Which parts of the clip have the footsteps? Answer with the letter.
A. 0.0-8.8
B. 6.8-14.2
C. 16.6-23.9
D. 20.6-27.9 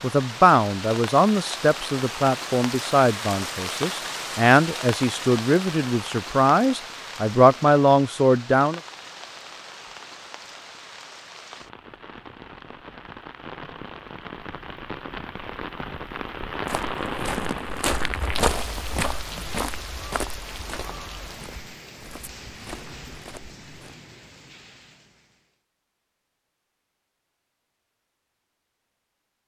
C.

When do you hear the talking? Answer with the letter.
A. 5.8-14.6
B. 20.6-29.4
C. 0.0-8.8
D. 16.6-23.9
C.